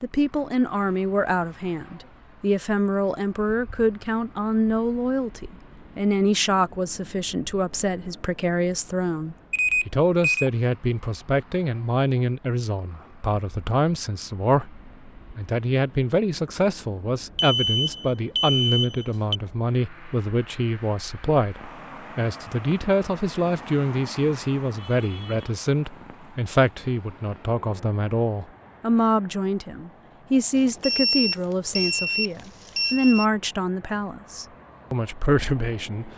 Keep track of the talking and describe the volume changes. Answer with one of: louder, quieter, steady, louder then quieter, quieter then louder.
steady.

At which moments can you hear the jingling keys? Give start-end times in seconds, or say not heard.
not heard.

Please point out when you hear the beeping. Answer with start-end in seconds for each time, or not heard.
9.5-10.5, 17.4-19.4, 30.6-33.2.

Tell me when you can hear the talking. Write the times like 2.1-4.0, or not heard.
0.0-36.1.